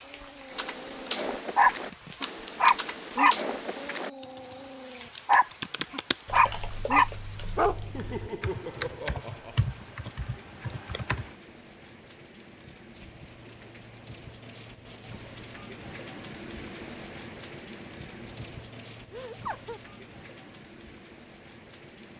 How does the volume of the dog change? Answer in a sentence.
The loudness of the dog goes down, then up.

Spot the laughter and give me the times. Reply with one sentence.
You can hear the laughter from 7.8 to 9.6 s and from 19.1 to 19.8 s.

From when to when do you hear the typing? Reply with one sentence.
You can hear the typing from 0.5 to 11.3 s.